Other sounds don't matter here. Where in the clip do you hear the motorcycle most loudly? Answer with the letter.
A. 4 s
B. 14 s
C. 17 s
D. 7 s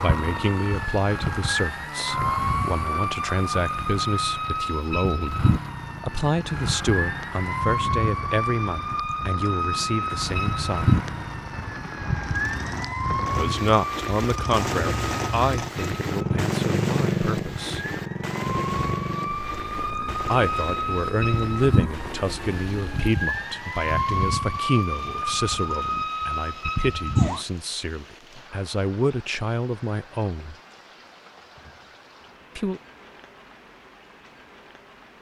C.